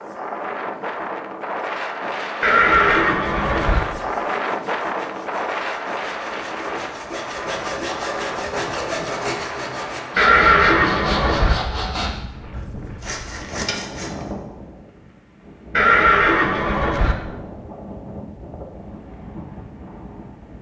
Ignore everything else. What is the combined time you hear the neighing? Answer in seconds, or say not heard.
4 s.